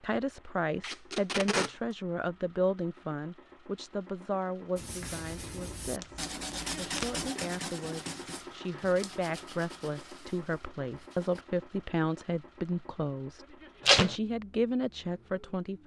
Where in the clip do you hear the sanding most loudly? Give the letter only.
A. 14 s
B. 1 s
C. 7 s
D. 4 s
C.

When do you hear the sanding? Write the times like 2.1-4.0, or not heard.
4.8-11.6.